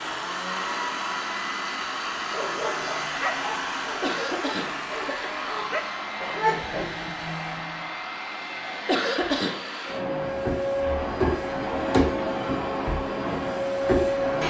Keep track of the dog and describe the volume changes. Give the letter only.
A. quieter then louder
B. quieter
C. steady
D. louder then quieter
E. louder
A.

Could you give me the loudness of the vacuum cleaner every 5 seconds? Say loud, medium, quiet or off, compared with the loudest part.
medium, medium, loud.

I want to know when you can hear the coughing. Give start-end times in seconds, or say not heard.
3.9-5.3, 8.8-9.7.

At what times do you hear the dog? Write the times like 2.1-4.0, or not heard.
2.2-7.8.